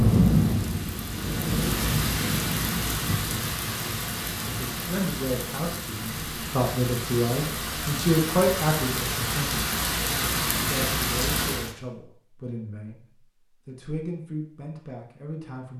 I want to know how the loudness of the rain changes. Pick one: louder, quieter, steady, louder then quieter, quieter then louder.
quieter then louder.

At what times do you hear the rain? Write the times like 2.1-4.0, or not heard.
0.0-11.8.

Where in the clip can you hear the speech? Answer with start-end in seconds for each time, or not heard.
4.5-9.6, 10.6-13.1, 13.7-15.7.